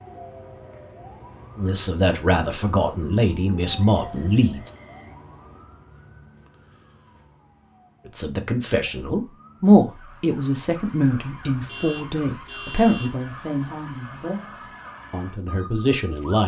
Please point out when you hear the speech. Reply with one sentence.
You can hear the speech from 1.6 to 4.7 s and from 8.1 to 16.4 s.